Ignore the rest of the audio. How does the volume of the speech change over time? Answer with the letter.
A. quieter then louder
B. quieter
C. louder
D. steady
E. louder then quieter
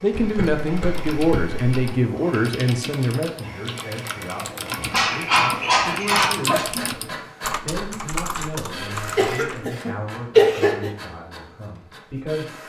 B.